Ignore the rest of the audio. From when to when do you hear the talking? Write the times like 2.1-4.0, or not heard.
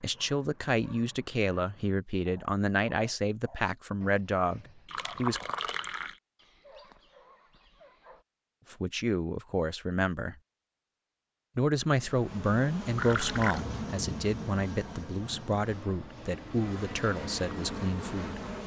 0.0-5.5, 8.7-10.3, 11.6-18.4.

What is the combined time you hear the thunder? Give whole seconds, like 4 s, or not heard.
2 s.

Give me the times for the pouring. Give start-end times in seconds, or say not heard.
4.8-6.2, 12.9-13.7.